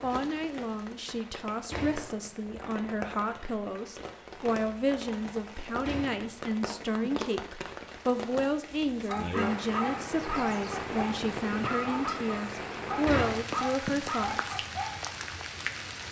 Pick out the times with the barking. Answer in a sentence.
The barking can be heard from 9.1 to 15.1 s.